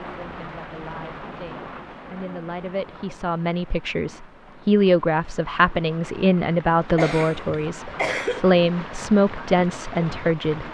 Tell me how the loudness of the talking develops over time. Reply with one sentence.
The volume of the talking goes up.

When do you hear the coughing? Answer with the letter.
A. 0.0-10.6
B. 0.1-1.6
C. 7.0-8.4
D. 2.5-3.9
C.